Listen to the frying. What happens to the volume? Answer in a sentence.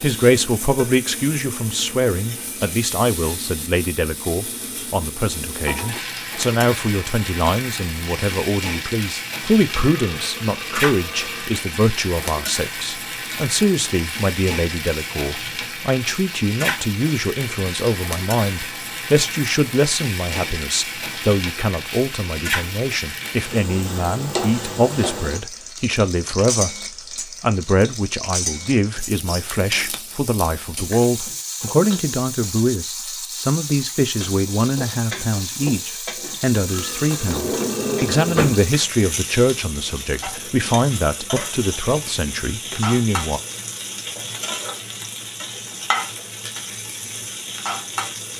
The loudness of the frying stays about the same.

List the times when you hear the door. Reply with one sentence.
You can hear the door from 37.1 to 38.6 s.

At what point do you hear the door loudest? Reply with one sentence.
The volume of the door peaks at 38 seconds.